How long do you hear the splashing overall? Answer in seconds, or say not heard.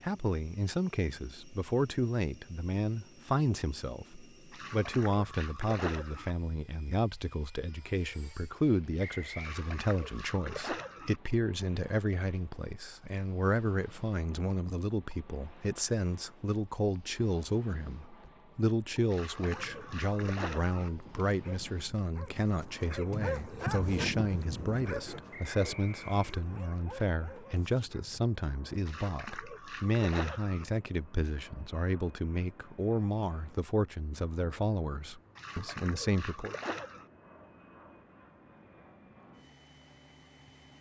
9 s.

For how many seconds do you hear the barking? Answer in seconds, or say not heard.
9 s.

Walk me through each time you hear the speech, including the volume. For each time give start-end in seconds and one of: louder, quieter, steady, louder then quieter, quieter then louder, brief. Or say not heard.
0.0-36.5 steady.